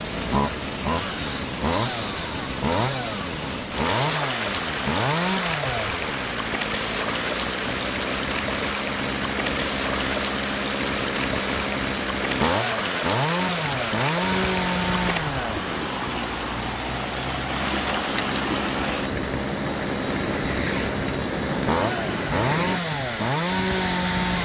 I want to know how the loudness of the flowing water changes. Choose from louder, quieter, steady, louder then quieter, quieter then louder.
steady.